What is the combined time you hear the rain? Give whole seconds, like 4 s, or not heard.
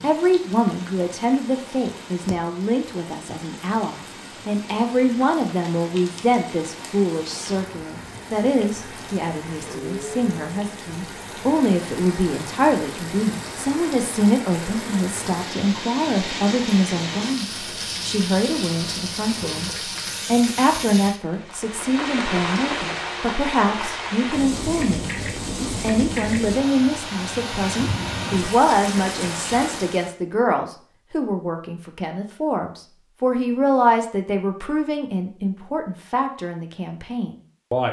30 s.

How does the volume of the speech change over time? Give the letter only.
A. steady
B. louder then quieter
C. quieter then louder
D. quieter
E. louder
A.